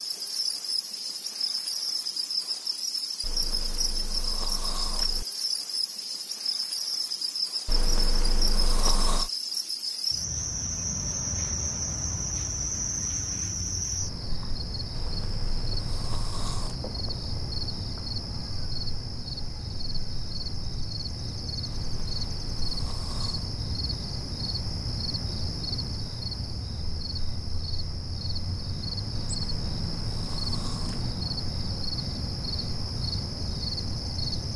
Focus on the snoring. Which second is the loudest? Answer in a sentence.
The loudest moment of the snoring is at 9 seconds.